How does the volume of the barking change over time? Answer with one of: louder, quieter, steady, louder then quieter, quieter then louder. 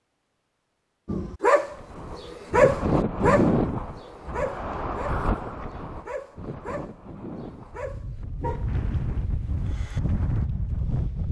quieter.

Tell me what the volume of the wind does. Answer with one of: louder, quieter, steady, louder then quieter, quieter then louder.
quieter then louder.